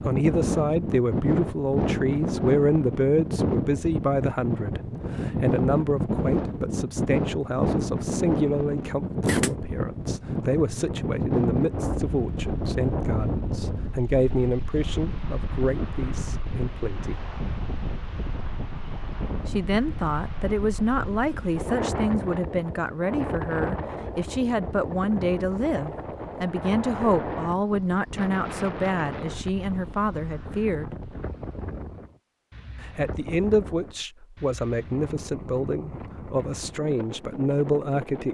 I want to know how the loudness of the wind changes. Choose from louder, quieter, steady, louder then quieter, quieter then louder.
quieter.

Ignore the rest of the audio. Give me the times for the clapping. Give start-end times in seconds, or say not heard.
not heard.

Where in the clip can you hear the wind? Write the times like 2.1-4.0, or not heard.
0.0-38.2.